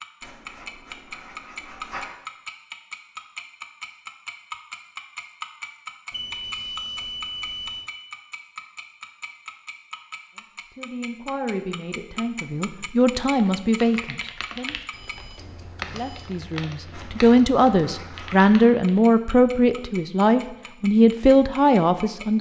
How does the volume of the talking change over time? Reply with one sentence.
The volume of the talking goes up.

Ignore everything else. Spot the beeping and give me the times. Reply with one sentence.
The beeping can be heard from 6.1 to 7.9 s and from 14.9 to 16.3 s.